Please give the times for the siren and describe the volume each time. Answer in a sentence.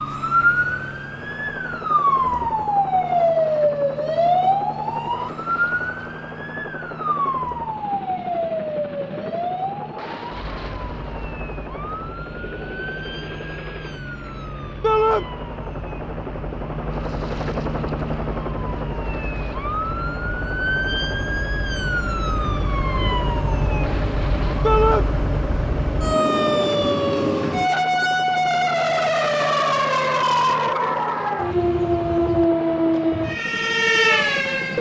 You can hear the siren from 0.0 to 34.7 s, getting quieter then louder.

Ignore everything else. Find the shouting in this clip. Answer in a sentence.
You can hear the shouting from 14.8 to 15.2 s and from 24.6 to 25.1 s.